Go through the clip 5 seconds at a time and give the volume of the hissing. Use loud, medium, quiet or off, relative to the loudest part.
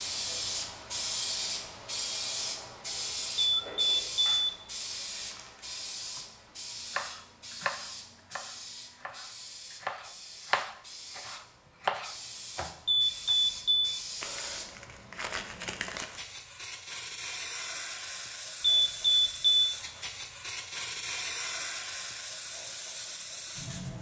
loud, medium, medium, medium, loud.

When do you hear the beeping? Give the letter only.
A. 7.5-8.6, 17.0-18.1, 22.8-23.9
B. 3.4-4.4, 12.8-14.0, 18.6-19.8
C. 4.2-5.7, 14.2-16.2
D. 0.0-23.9
B.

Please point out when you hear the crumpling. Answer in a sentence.
You can hear the crumpling from 4.2 to 5.7 s and from 14.2 to 16.2 s.